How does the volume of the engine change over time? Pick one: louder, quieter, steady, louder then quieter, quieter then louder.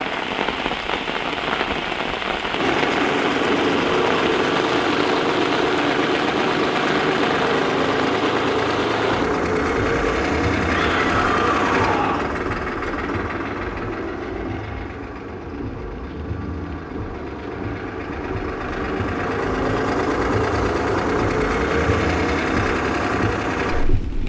quieter then louder.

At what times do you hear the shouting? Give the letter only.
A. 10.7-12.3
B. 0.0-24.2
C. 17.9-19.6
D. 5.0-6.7
A.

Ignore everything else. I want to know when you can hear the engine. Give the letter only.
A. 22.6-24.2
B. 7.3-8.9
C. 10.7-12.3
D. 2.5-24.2
D.